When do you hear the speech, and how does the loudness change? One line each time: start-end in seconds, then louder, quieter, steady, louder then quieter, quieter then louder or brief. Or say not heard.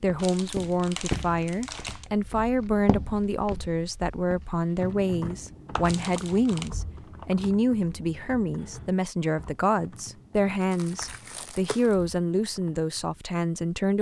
0.0-13.9 steady.